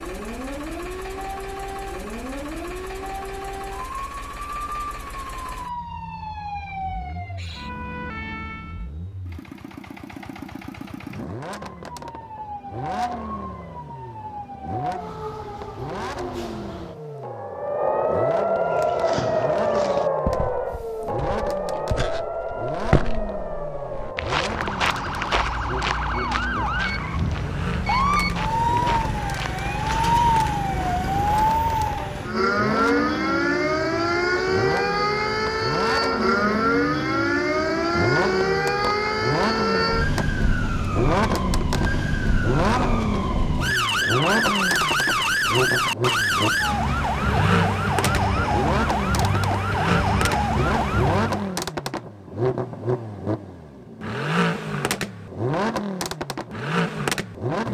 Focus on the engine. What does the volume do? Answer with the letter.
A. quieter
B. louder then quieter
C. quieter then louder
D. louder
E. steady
D.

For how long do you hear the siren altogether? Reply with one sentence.
The siren can be heard for 49 seconds in total.